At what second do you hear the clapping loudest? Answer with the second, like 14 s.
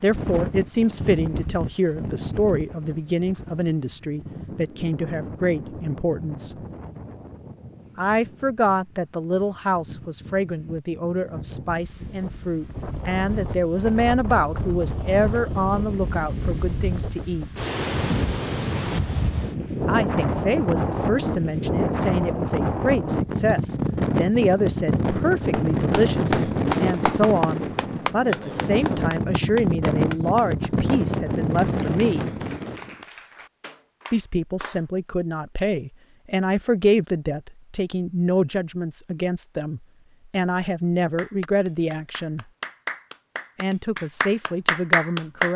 45 s.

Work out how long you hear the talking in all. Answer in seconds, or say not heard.
39 s.